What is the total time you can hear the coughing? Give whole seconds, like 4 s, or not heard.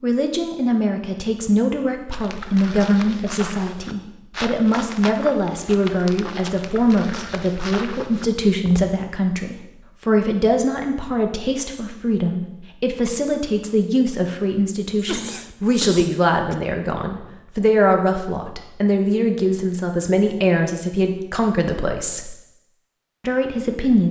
2 s.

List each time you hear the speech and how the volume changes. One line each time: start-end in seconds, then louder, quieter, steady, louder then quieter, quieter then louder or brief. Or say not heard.
0.0-22.4 steady
23.2-24.0 brief.